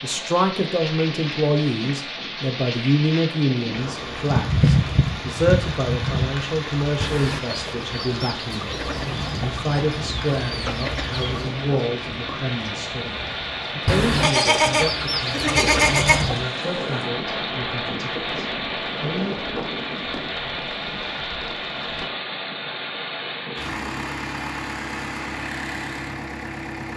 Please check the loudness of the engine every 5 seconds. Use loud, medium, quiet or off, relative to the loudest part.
medium, medium, loud, loud, loud, loud.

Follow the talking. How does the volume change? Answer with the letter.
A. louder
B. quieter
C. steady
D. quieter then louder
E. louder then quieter
B.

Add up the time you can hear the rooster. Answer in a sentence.
You can hear the rooster for 7 seconds altogether.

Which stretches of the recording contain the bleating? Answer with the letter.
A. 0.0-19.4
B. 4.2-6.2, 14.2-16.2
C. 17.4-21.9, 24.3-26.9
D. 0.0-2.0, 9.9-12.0
B.